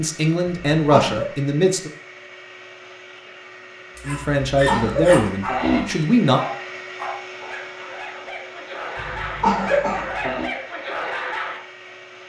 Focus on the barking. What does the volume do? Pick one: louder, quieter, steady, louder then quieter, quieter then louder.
quieter then louder.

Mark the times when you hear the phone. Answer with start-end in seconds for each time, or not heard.
not heard.